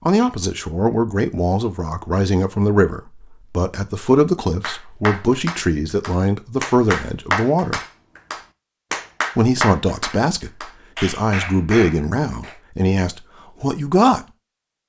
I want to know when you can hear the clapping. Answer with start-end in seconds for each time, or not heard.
4.6-12.6.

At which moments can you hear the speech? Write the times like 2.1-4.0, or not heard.
0.1-7.8, 9.3-14.2.